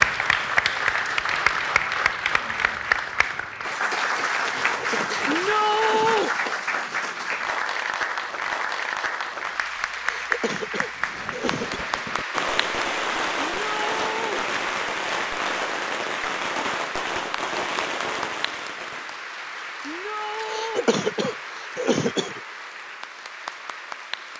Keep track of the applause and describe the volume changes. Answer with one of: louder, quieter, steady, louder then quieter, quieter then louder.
quieter.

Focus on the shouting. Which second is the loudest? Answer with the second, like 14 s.
6 s.